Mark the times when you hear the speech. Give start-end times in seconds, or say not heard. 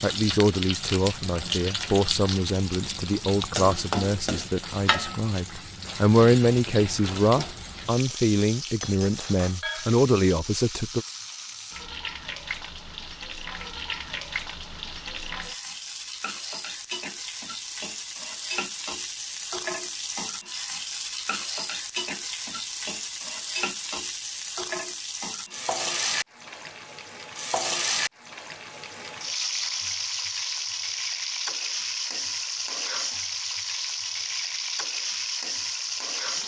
0.0-11.1.